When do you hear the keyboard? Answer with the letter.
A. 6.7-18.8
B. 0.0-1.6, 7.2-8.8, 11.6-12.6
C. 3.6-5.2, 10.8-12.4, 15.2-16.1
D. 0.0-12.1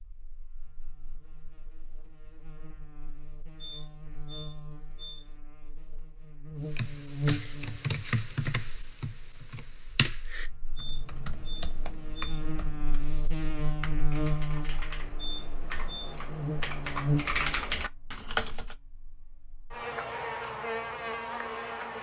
A.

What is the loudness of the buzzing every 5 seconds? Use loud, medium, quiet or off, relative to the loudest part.
quiet, loud, loud, loud, loud.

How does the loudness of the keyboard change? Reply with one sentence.
The volume of the keyboard goes down, then up.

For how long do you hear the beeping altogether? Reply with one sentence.
You can hear the beeping for 4 seconds altogether.